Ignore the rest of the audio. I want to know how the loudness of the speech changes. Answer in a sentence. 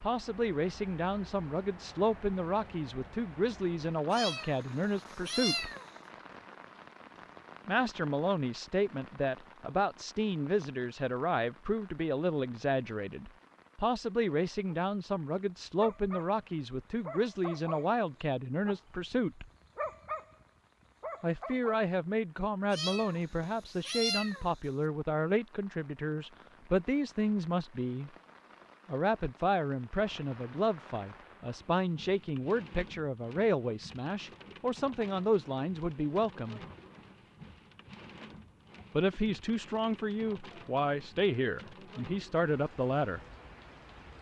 The loudness of the speech stays about the same.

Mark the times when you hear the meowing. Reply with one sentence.
The meowing can be heard from 4.1 to 5.9 s and from 22.7 to 24.5 s.